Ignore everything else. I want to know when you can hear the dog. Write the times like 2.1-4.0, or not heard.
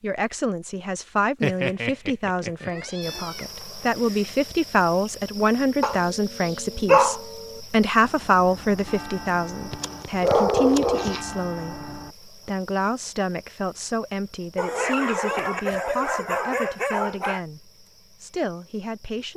1.4-3.2, 5.8-7.2, 9.7-11.2, 14.6-17.4.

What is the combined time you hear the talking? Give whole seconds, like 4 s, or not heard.
19 s.